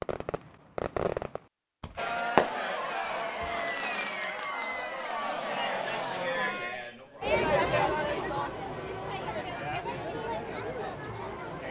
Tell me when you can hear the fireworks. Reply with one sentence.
The fireworks can be heard from 0.0 to 5.2 s.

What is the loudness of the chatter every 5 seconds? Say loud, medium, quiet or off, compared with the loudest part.
loud, loud, medium.